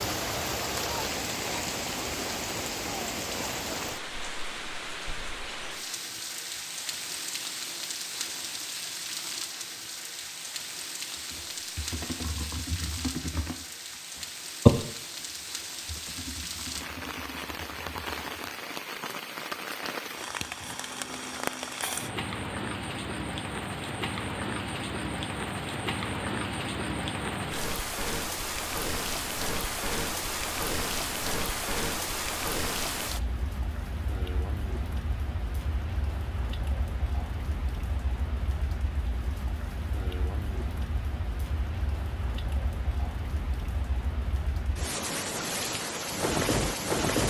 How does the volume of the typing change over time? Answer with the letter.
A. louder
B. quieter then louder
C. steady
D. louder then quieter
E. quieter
D.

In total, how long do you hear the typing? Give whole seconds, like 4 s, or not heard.
7 s.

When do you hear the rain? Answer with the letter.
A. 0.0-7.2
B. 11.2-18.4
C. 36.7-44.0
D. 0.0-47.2
D.